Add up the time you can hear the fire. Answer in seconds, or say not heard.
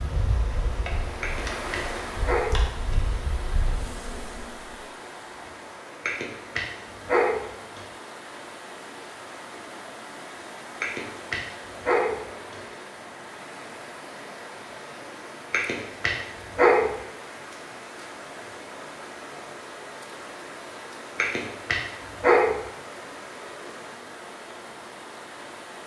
not heard.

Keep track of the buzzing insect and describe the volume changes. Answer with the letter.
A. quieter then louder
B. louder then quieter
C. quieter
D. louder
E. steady
E.